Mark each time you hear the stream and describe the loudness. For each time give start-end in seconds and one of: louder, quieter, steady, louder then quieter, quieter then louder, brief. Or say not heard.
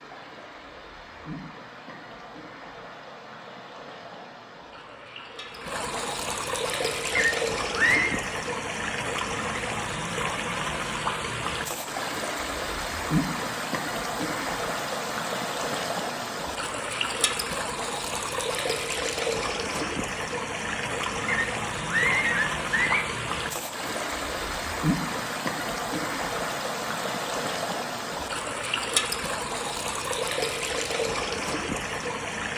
0.0-32.5 louder.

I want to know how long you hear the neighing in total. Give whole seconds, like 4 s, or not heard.
3 s.